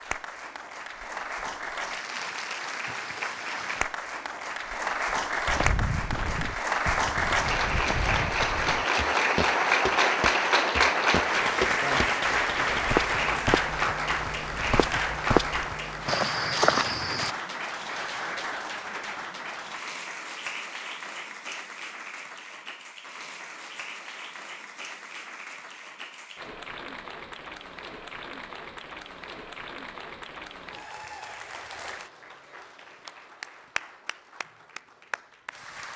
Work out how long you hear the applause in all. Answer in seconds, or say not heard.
36 s.